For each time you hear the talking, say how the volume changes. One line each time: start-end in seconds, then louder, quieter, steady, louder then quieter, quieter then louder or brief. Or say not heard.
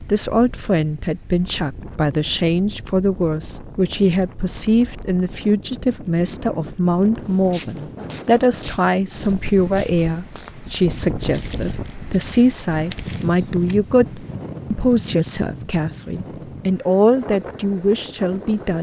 0.0-18.7 steady.